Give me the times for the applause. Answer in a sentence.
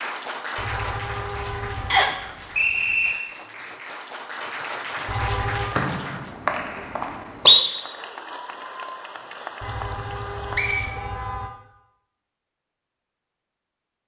The applause can be heard from 0.0 to 6.3 s and from 7.5 to 10.8 s.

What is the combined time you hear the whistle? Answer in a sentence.
You can hear the whistle for 4 seconds altogether.